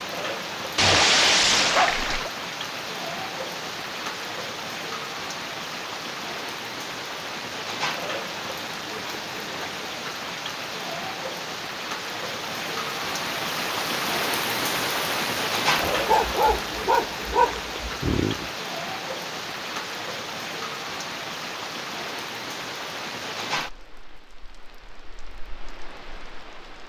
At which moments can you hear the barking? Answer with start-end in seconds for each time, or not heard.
0.8-2.3, 15.8-18.5.